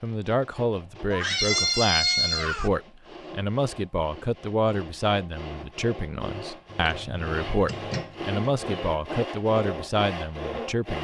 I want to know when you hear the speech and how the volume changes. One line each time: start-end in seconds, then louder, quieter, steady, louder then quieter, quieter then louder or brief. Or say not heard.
0.0-10.9 steady.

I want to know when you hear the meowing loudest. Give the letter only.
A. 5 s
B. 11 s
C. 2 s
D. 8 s
C.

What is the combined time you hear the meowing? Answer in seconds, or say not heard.
4 s.